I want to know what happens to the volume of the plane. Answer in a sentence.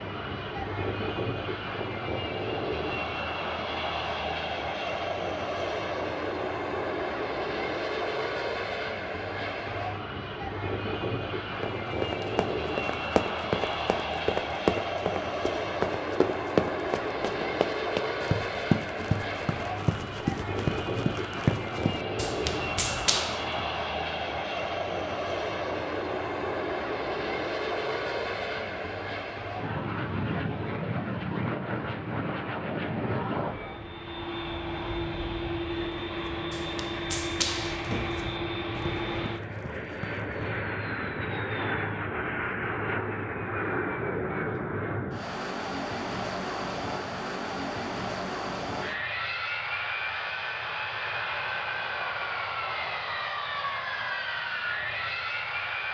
The volume of the plane stays about the same.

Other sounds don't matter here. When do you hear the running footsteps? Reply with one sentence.
The running footsteps can be heard from 11.6 to 23.6 s and from 35.9 to 40.5 s.